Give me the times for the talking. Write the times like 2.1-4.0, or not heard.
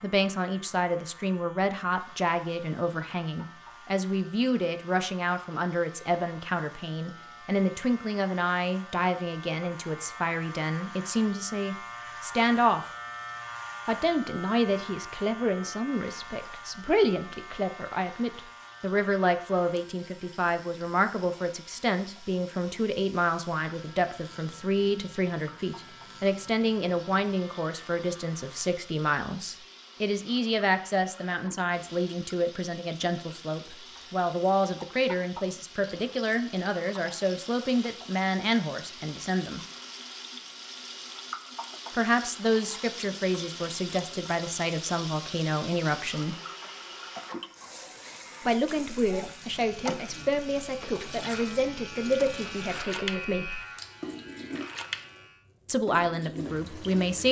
0.0-12.9, 13.8-39.6, 41.9-46.4, 48.5-53.6, 55.6-57.2.